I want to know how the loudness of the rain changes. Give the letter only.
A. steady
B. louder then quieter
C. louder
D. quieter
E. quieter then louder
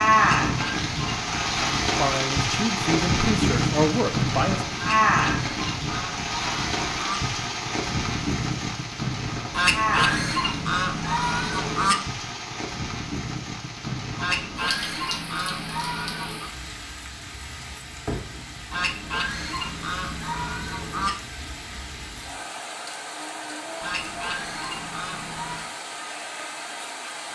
D.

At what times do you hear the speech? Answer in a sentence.
The speech can be heard from 1.9 to 4.7 s.